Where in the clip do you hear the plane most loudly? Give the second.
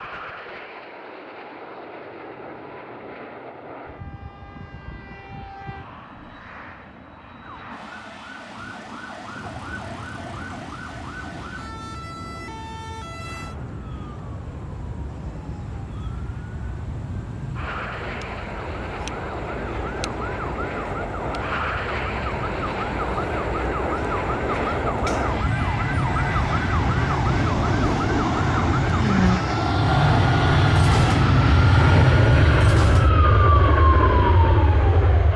32 s.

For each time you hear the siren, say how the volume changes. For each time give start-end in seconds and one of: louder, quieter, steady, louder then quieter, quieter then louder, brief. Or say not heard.
7.4-35.3 louder.